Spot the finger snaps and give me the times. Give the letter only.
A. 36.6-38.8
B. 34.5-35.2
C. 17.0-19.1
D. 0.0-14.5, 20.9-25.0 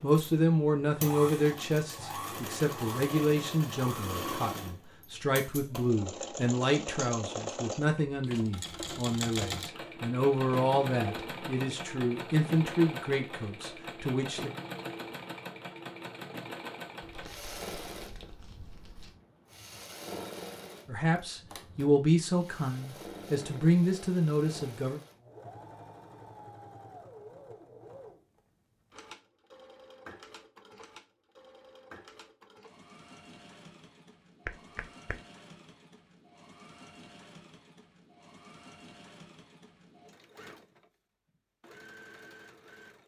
B.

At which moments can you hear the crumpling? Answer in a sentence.
You can hear the crumpling from 17.0 to 19.1 s.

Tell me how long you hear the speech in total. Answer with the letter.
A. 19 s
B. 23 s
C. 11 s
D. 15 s
A.